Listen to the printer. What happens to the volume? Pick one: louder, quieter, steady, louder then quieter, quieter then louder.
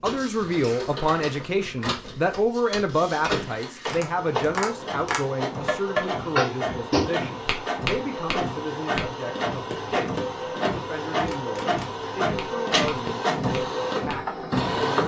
louder.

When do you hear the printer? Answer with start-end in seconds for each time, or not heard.
0.0-15.0.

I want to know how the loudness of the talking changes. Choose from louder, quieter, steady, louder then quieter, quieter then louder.
quieter.